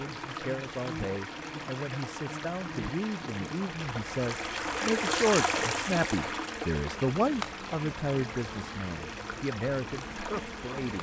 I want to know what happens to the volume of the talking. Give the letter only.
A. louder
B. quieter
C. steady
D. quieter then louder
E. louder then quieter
E.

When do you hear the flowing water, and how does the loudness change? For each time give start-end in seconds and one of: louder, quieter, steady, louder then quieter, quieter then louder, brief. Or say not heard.
0.0-10.9 louder then quieter.